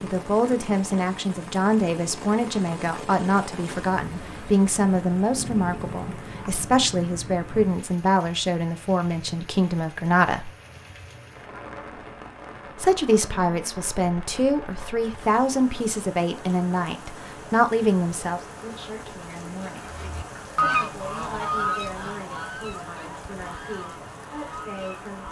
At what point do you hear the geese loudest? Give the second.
21 s.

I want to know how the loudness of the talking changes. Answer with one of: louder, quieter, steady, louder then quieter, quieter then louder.
quieter.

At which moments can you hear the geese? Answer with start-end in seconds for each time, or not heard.
19.8-25.2.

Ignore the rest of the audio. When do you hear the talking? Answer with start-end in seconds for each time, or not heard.
0.0-10.5, 12.8-19.9, 20.6-25.2.